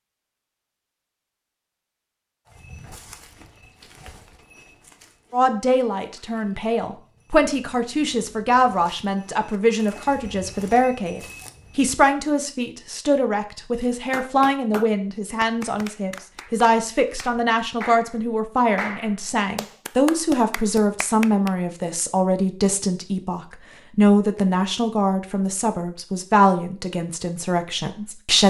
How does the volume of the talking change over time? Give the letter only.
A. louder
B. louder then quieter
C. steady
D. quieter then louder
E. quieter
C.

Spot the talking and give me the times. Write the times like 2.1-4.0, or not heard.
5.3-28.4.